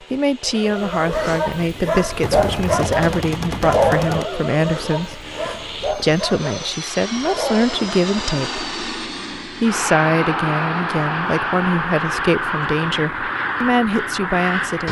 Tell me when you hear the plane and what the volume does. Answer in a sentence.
You can hear the plane from 0.0 to 14.8 s, getting louder.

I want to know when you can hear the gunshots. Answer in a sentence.
You can hear the gunshots from 2.2 to 4.2 s.